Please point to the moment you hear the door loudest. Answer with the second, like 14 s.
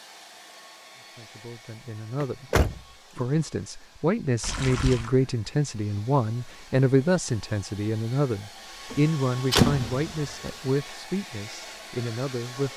10 s.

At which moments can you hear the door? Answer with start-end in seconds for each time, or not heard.
2.2-3.2, 8.9-10.1.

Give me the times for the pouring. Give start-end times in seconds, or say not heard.
4.4-5.1.